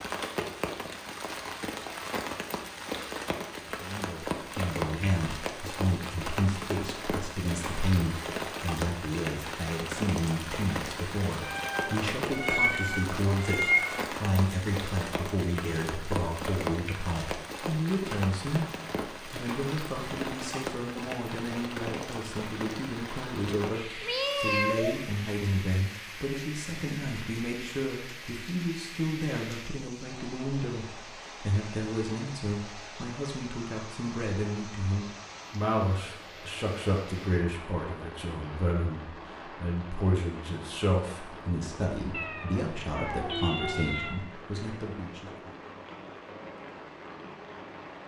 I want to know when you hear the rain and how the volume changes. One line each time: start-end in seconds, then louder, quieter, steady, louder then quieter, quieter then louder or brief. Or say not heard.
0.0-48.0 quieter.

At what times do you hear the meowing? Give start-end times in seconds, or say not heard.
11.4-14.1, 24.0-25.0, 42.1-44.2.